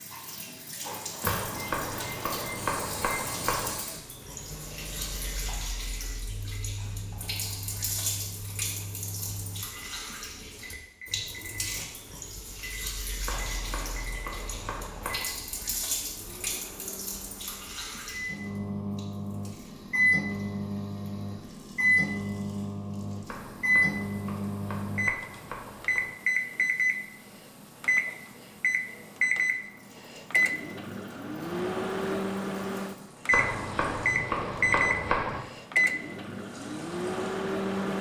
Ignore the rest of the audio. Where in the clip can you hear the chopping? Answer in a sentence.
You can hear the chopping from 1.2 to 3.8 s, from 13.2 to 15.2 s, from 23.2 to 26.1 s and from 33.3 to 35.4 s.